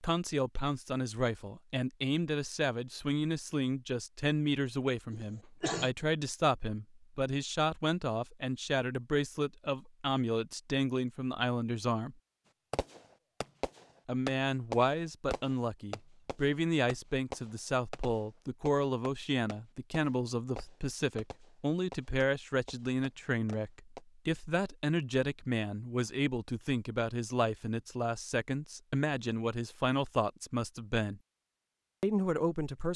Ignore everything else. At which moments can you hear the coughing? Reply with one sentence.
You can hear the coughing from 5.1 to 5.9 s.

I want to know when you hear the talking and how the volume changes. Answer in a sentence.
You can hear the talking from 0.0 to 12.2 s, at a steady volume; from 14.1 to 31.2 s, at a steady volume; and briefly from 32.0 to 32.9 s.